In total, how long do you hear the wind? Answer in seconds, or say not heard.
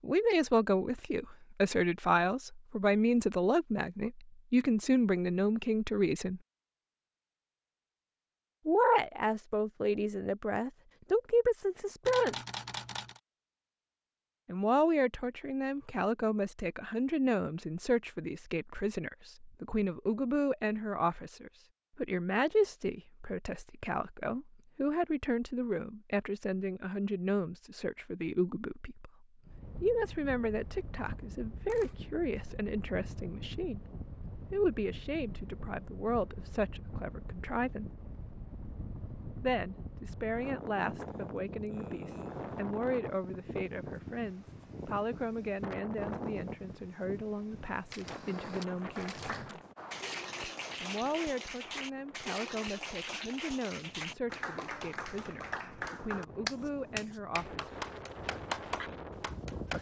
30 s.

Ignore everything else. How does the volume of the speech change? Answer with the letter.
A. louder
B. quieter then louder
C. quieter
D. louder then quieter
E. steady
C.